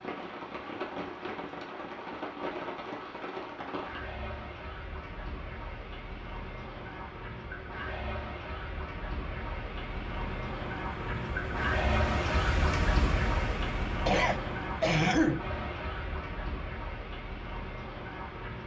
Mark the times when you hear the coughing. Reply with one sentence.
The coughing can be heard from 14.1 to 15.4 s.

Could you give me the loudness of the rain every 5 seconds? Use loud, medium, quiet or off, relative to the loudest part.
medium, medium, loud, medium.